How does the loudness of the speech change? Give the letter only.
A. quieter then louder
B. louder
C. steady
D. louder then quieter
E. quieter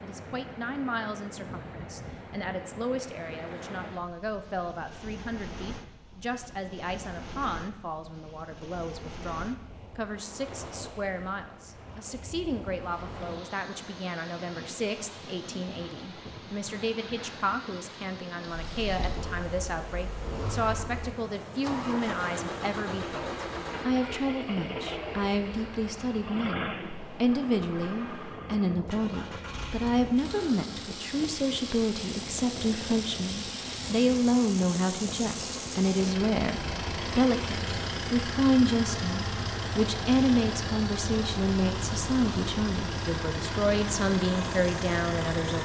B.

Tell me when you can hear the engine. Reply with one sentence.
The engine can be heard from 18.4 to 45.6 s.